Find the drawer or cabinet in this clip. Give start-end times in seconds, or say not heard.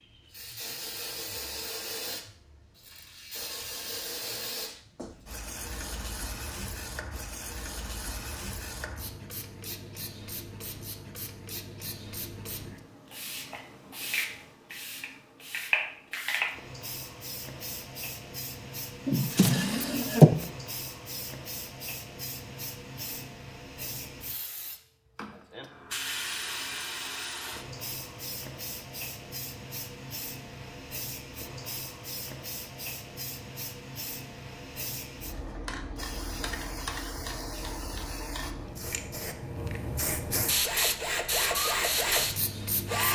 19.1-20.4.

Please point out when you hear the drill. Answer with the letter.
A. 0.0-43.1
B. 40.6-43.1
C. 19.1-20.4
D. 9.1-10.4
B.